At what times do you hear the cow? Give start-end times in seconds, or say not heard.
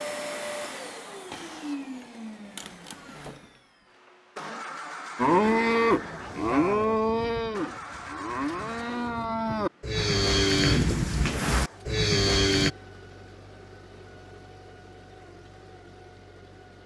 5.2-12.7.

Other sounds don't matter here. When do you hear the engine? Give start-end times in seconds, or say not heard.
0.0-16.8.